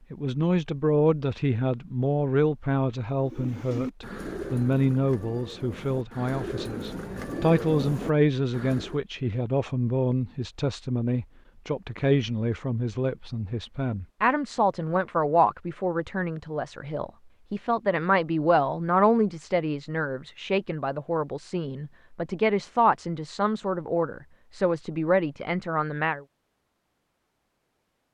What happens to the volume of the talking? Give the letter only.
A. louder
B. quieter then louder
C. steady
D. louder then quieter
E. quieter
C.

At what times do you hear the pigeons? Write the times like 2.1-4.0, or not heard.
3.2-9.0.